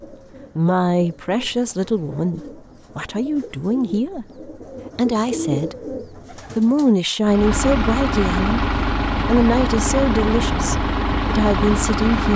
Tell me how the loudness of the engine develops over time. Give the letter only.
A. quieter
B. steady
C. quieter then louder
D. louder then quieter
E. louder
B.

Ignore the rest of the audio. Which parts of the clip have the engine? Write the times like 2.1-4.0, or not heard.
7.2-12.3.